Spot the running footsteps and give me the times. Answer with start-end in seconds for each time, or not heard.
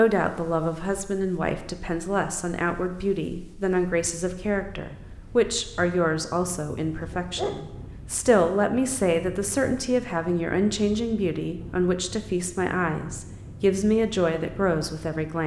not heard.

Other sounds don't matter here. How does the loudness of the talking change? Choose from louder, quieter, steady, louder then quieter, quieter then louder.
steady.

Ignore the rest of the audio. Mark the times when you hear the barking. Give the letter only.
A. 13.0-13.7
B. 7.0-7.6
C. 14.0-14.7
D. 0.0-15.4
B.